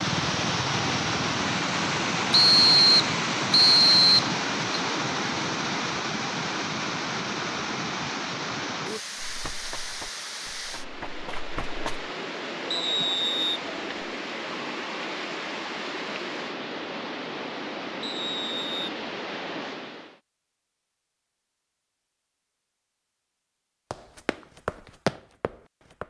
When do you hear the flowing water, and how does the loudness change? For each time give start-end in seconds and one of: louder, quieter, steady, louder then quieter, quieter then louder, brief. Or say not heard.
0.0-20.2 quieter.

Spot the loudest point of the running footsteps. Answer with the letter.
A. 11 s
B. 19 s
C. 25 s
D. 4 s
C.